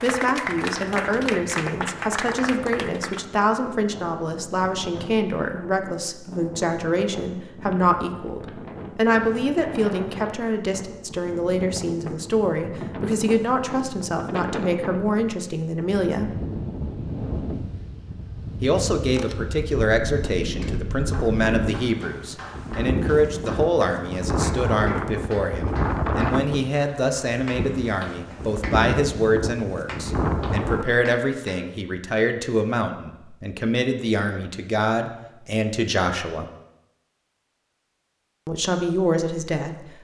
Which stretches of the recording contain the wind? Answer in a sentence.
You can hear the wind from 0.0 to 30.9 s.